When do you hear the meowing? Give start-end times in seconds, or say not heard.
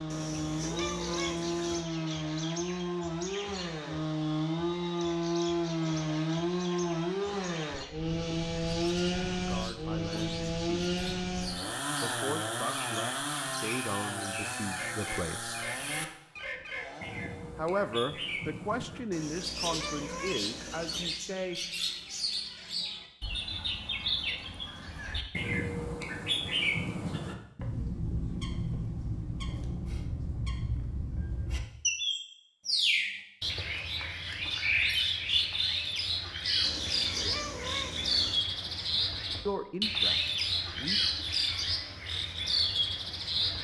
0.1-1.9, 19.1-21.2, 36.6-38.5.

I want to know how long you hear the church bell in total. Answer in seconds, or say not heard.
not heard.